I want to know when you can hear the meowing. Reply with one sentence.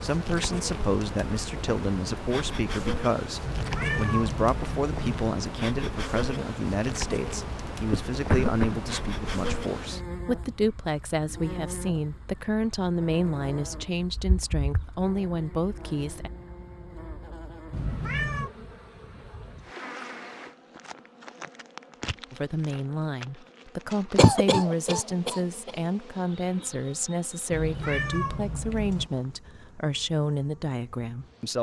You can hear the meowing from 3.4 to 5.3 s, from 17.7 to 18.5 s and from 27.5 to 29.1 s.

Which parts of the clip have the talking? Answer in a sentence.
You can hear the talking from 0.0 to 16.3 s and from 22.3 to 31.5 s.